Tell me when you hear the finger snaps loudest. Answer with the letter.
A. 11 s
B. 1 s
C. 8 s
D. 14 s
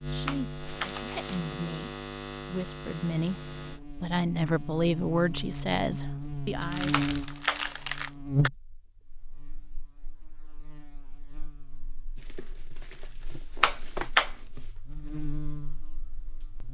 D.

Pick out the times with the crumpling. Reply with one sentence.
You can hear the crumpling from 0.8 to 1.4 s, from 6.6 to 8.1 s and from 12.2 to 14.7 s.